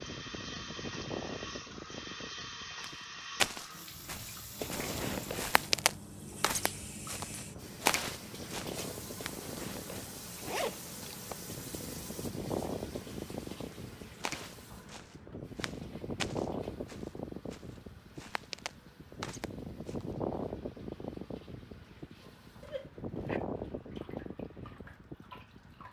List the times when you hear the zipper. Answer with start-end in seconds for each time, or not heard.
4.5-5.8, 9.2-11.4, 22.6-23.4.